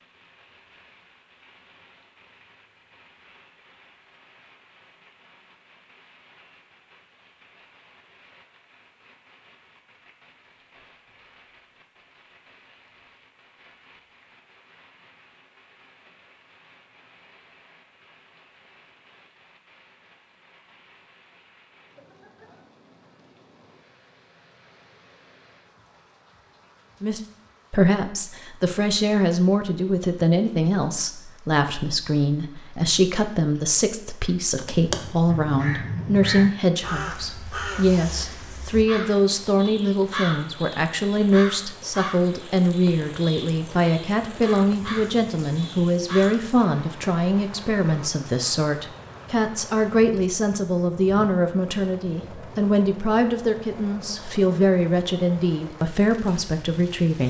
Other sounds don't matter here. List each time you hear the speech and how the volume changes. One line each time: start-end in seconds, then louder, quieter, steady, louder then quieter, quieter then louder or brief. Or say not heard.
27.0-57.2 steady.